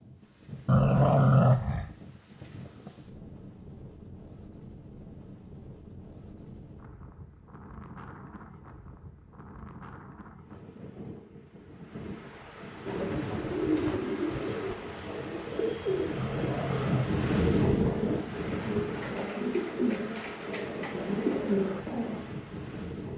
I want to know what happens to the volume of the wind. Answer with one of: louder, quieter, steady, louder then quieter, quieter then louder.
louder then quieter.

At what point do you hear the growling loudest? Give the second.
1 s.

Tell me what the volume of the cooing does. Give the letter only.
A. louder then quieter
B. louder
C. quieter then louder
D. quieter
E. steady
C.